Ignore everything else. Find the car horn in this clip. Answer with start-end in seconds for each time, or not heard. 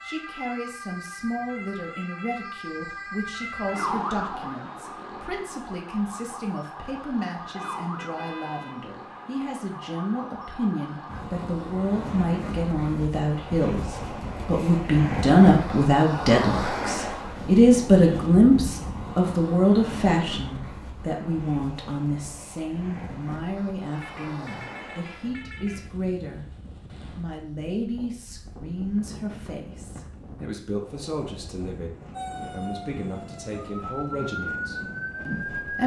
7.5-8.8, 23.9-25.9.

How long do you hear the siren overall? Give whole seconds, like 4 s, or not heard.
15 s.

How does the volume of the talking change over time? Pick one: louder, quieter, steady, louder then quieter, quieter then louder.
louder then quieter.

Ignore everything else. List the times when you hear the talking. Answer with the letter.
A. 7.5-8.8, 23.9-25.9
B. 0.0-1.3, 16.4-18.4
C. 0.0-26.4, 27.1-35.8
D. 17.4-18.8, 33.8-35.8
C.